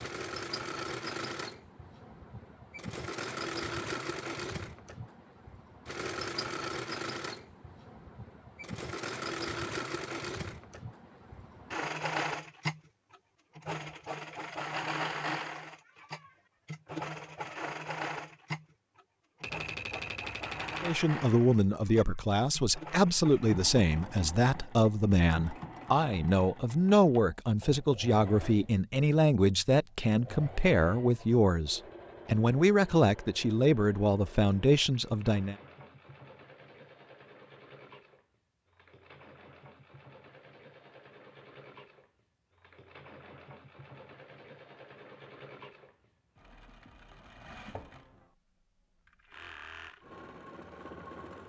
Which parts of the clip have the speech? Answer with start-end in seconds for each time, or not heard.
20.8-35.5.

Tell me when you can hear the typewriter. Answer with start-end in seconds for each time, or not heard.
19.4-21.0.